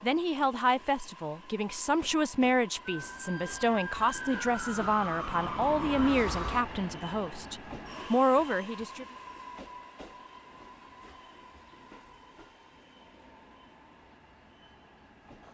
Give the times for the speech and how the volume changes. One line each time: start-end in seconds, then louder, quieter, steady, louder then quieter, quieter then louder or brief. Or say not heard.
0.0-9.1 steady.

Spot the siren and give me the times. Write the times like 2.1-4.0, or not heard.
2.9-6.7.